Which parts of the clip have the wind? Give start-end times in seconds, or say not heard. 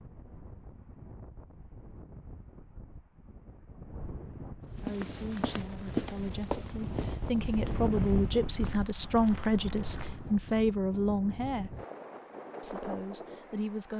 0.0-13.9.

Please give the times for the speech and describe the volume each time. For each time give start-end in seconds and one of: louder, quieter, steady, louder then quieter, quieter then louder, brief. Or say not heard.
4.8-11.7 louder
12.6-13.9 brief.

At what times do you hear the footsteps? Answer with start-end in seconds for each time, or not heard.
4.8-10.4.